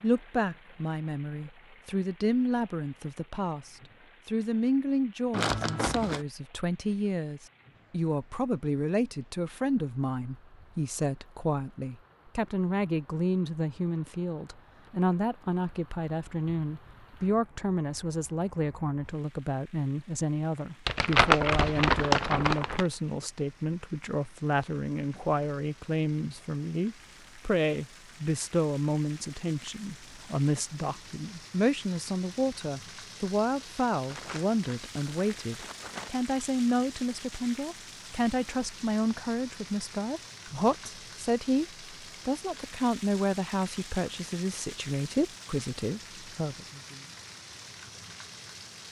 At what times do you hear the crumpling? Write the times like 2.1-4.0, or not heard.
5.3-6.2, 20.9-22.9, 34.1-36.1.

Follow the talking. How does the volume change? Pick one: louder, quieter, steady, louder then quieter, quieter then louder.
steady.